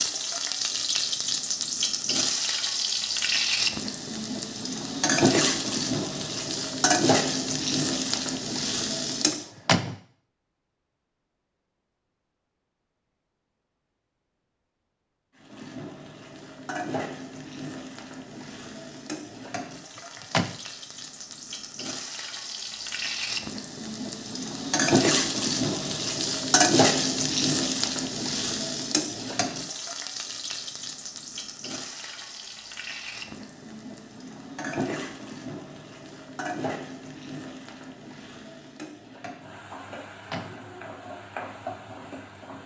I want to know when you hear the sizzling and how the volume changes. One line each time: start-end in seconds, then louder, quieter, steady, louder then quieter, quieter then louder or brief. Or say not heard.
0.0-9.5 steady
15.3-42.6 louder then quieter.